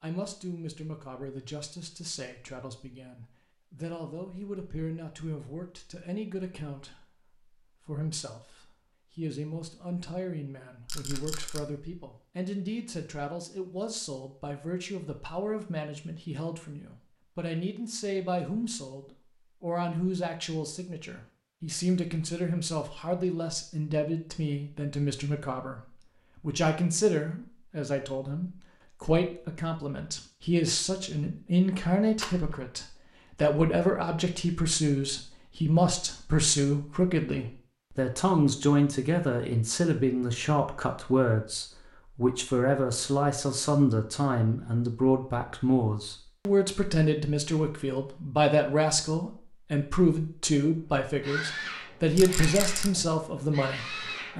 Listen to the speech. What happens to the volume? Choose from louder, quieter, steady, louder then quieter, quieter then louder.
louder.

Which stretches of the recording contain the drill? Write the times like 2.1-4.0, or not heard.
51.2-54.3.